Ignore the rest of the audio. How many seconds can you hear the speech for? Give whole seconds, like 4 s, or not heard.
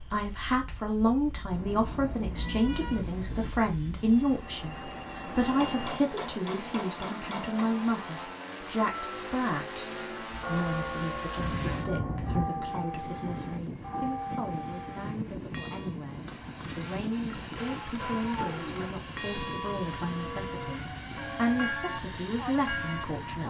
23 s.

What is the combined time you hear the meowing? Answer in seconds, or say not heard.
4 s.